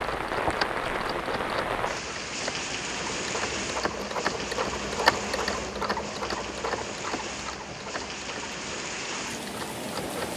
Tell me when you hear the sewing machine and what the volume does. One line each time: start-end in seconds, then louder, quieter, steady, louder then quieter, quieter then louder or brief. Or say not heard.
0.0-10.3 louder then quieter.